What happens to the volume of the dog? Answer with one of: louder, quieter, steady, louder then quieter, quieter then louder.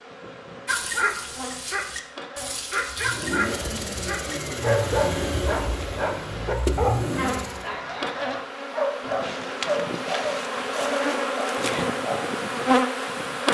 steady.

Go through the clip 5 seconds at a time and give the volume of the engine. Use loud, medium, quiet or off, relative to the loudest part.
loud, loud, off.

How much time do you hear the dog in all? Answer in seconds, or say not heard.
12 s.